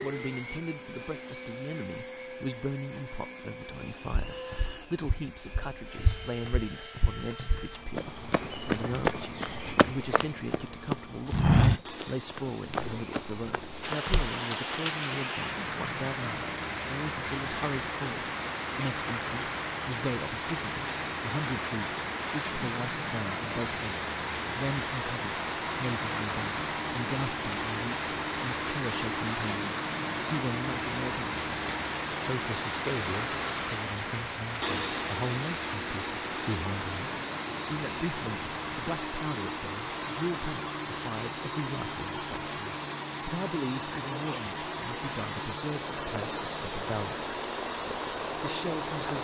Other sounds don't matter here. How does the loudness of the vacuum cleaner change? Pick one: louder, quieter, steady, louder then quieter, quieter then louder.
louder.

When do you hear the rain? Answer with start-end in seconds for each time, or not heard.
13.8-49.1.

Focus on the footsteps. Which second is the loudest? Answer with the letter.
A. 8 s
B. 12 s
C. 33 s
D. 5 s
B.